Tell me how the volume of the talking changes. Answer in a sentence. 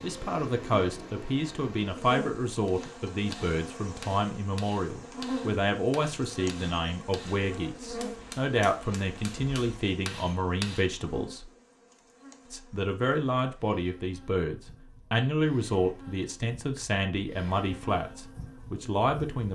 The loudness of the talking stays about the same.